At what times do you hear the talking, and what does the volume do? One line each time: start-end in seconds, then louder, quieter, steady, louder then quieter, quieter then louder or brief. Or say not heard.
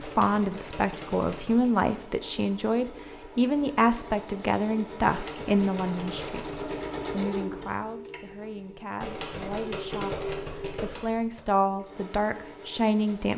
0.0-13.3 quieter then louder.